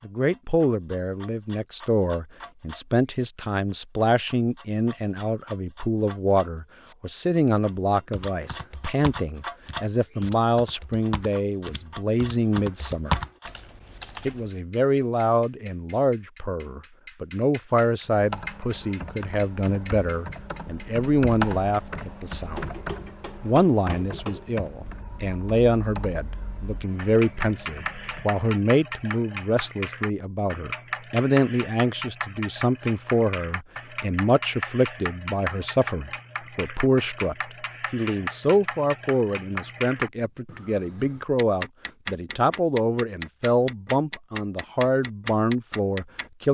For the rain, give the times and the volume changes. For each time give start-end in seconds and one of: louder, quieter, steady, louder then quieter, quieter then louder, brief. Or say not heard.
not heard.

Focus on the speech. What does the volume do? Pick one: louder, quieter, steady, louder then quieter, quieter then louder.
steady.